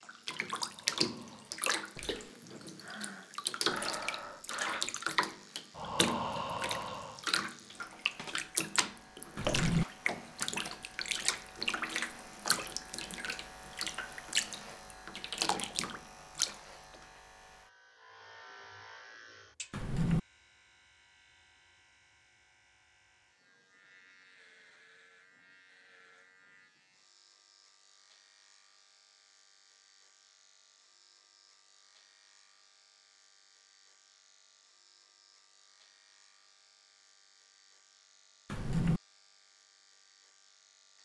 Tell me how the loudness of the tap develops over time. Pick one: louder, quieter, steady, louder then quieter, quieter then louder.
steady.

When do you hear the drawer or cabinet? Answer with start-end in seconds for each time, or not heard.
9.3-9.8, 19.7-20.2, 38.5-39.0.